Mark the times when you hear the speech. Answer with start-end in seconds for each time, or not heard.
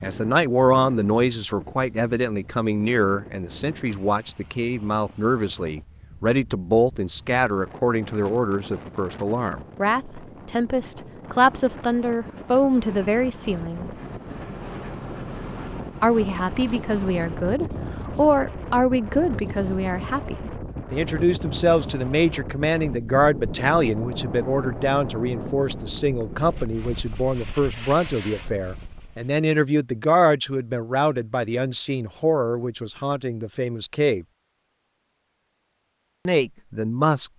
0.0-13.8, 16.0-34.2, 36.2-37.3.